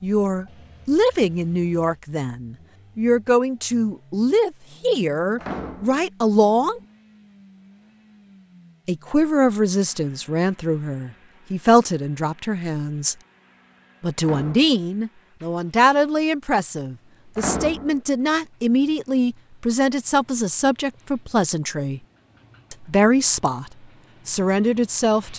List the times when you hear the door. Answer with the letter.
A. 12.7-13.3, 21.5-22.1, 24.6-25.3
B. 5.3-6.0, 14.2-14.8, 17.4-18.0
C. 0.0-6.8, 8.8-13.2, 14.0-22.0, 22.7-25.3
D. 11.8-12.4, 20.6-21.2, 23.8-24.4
B.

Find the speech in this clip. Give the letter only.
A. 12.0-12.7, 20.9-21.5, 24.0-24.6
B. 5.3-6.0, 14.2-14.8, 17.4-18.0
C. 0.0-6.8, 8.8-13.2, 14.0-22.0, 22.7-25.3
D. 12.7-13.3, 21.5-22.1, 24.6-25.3
C.